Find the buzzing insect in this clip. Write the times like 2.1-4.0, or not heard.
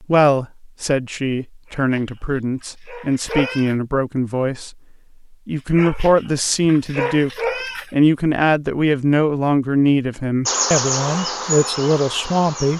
10.4-12.7.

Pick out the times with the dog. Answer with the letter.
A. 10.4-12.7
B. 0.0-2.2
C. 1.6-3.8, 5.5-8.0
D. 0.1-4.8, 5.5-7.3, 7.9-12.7
C.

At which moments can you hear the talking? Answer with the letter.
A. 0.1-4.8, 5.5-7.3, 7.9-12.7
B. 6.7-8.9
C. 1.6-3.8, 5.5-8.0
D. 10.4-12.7
A.